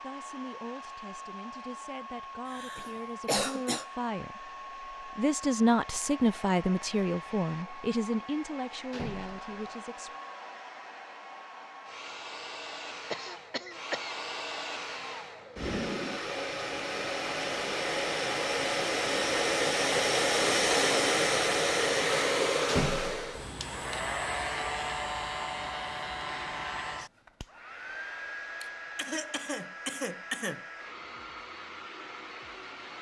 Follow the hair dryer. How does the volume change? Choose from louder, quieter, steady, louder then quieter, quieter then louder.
louder then quieter.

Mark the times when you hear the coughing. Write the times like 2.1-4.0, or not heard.
2.5-3.9, 13.1-14.2, 28.6-30.6.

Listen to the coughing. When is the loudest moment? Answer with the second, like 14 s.
3 s.